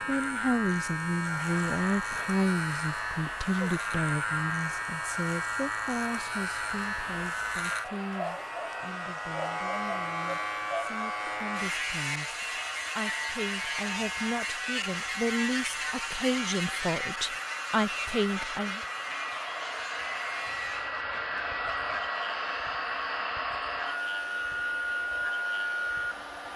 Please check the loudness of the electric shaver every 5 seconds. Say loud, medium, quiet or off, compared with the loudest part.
loud, loud, loud, loud, medium, medium.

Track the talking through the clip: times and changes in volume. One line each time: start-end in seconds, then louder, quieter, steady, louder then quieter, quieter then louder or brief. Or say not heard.
0.1-18.8 quieter then louder.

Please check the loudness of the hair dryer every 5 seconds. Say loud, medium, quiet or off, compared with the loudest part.
medium, medium, medium, medium, loud, loud.